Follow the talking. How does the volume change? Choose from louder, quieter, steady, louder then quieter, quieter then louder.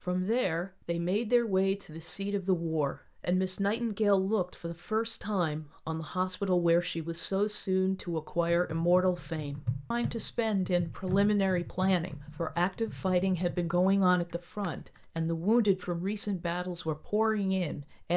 steady.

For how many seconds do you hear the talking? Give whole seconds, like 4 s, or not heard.
18 s.